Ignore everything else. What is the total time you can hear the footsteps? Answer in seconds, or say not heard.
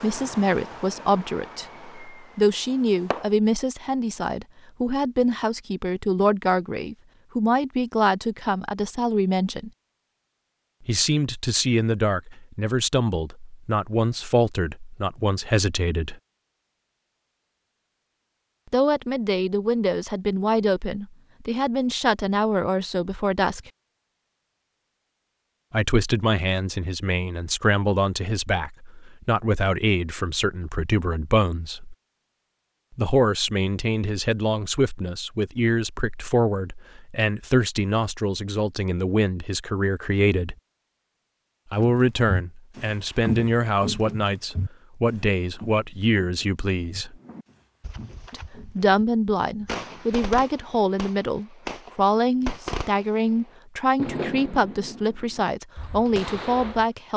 7 s.